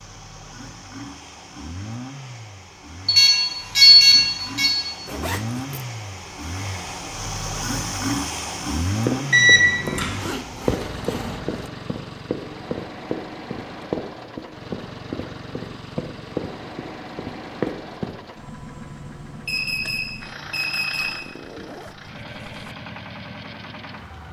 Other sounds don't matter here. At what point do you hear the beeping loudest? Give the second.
4 s.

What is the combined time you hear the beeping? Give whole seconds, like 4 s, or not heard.
4 s.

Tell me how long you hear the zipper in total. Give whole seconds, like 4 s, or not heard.
4 s.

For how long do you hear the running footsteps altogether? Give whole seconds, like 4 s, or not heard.
9 s.